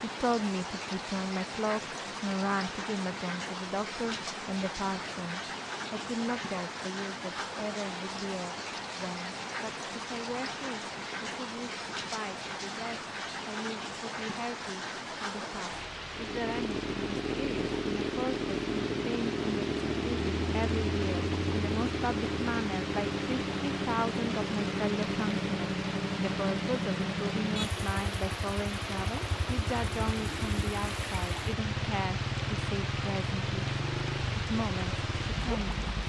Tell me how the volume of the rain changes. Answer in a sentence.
The loudness of the rain stays about the same.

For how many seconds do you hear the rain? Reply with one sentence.
The rain can be heard for 36 seconds in total.